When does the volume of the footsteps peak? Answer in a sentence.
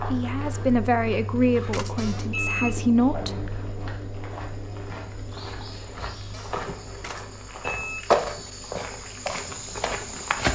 The loudest moment of the footsteps is at 8 seconds.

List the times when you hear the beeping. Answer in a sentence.
The beeping can be heard from 1.6 to 2.8 s and from 7.0 to 8.1 s.